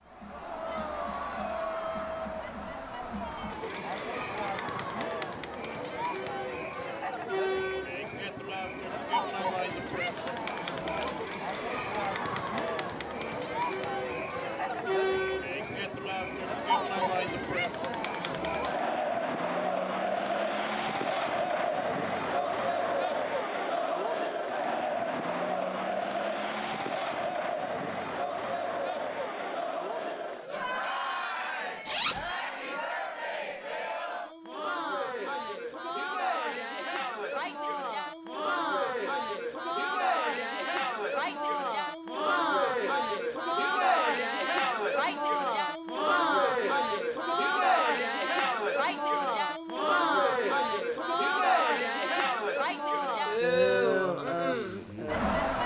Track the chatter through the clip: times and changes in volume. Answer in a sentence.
You can hear the chatter from 0.1 to 55.6 s, getting louder.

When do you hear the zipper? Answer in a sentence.
You can hear the zipper from 9.9 to 11.1 s and from 31.9 to 32.3 s.